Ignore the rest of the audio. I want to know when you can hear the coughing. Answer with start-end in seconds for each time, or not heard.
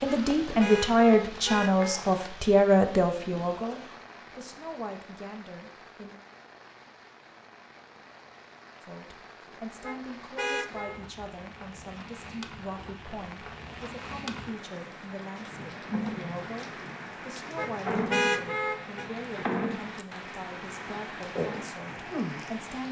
not heard.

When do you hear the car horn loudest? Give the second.
18 s.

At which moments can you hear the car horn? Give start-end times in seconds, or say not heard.
0.1-2.0, 9.8-11.0, 17.6-19.1.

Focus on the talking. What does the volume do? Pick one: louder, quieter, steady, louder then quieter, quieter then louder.
quieter.